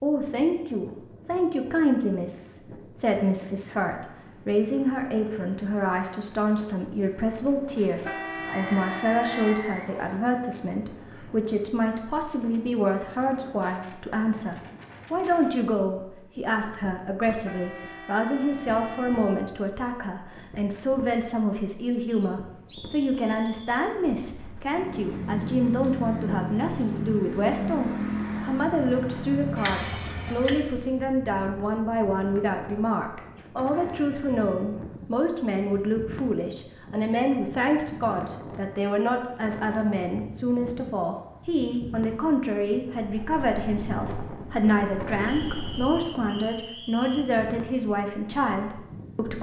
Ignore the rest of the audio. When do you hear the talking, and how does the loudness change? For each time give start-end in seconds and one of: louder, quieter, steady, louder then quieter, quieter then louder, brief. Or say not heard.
0.0-49.3 steady.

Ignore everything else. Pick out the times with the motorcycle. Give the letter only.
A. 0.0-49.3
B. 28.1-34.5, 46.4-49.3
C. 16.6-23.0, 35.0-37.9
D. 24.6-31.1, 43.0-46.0
D.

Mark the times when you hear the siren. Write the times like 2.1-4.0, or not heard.
not heard.